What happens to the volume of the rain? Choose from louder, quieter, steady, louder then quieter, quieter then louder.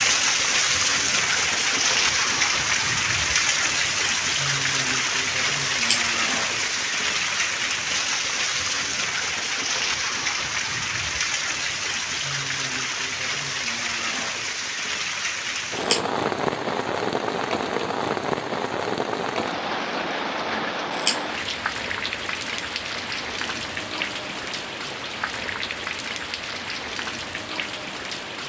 quieter.